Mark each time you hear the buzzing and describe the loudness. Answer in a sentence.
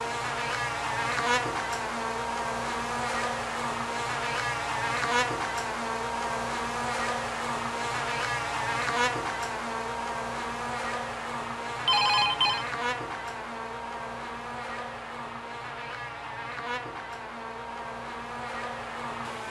You can hear the buzzing from 0.0 to 19.4 s, getting quieter.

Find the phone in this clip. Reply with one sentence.
You can hear the phone from 11.8 to 12.7 s.